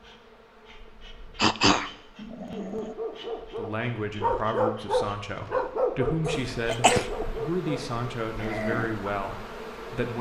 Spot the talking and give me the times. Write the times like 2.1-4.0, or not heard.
3.5-10.1.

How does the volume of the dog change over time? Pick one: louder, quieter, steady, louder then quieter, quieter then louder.
louder then quieter.